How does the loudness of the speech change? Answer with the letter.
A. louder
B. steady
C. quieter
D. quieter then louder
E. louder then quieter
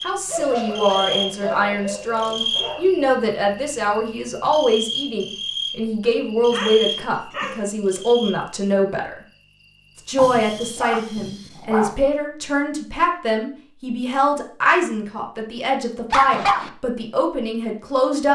B.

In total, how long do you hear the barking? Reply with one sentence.
The barking can be heard for 6 seconds in total.